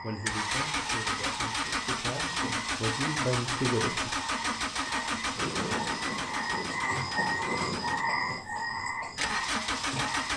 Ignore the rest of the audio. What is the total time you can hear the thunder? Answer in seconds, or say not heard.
3 s.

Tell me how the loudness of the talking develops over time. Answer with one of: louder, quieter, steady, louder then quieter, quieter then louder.
louder.